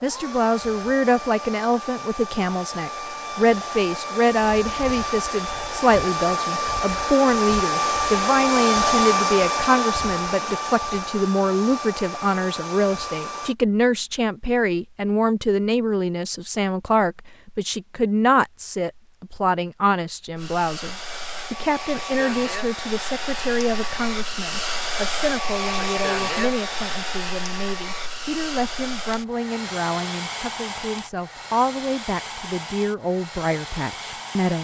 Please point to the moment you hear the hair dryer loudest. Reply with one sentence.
The loudest moment of the hair dryer is at 9 seconds.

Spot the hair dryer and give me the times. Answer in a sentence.
The hair dryer can be heard from 0.0 to 13.6 s and from 20.4 to 34.5 s.